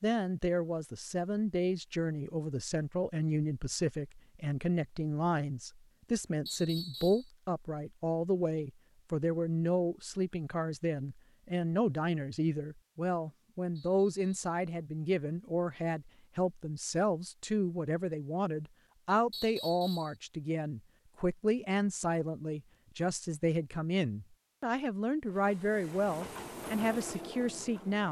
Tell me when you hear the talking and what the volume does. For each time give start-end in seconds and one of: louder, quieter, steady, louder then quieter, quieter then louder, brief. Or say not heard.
0.0-28.0 steady.